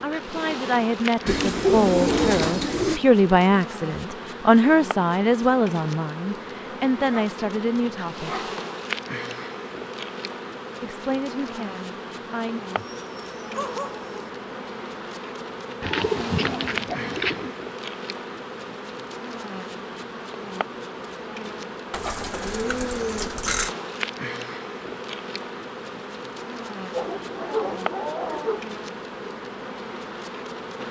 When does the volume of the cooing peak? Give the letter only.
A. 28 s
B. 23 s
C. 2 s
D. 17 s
C.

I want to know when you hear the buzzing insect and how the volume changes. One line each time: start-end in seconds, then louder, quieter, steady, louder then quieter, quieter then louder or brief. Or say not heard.
0.0-30.8 steady.